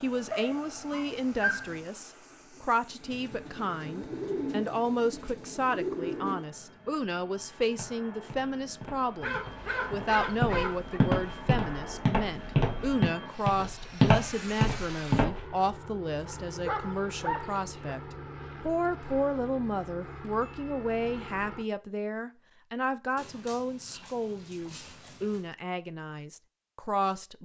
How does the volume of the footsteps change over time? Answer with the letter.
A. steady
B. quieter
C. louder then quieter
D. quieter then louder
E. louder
E.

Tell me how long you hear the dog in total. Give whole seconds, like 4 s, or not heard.
7 s.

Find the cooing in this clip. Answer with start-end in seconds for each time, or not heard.
1.8-6.5.